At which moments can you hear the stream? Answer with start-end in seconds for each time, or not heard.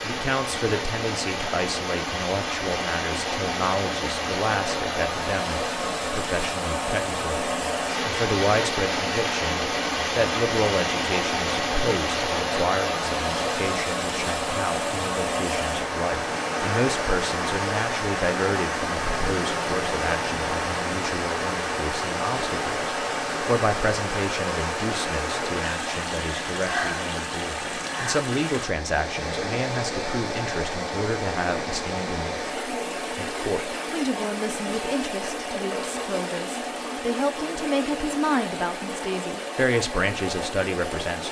0.0-41.2.